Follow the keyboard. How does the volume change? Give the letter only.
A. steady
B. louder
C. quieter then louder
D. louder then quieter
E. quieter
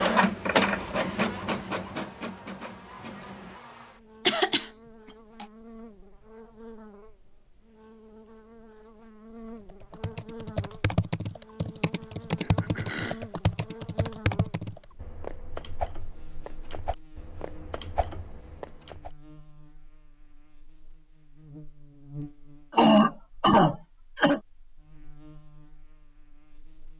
E.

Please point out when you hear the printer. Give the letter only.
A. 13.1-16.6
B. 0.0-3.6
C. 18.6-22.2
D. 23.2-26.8
B.